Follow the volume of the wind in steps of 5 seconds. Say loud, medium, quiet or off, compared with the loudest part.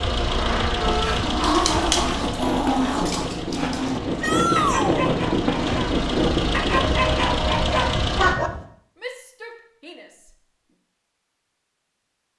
loud, loud, off.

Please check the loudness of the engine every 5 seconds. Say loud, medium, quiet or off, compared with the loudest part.
loud, loud, off.